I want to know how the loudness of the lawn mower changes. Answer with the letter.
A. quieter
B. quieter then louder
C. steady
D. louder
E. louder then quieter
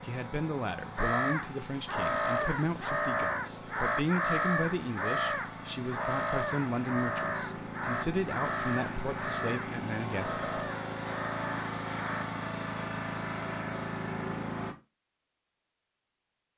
D.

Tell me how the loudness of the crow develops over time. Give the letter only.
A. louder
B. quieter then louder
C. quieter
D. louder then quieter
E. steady
C.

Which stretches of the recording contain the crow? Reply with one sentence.
The crow can be heard from 0.9 to 12.2 s.